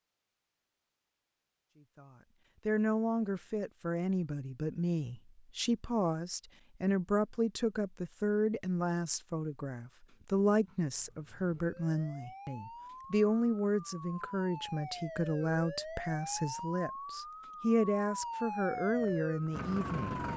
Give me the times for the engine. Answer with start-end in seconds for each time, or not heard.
18.7-20.3.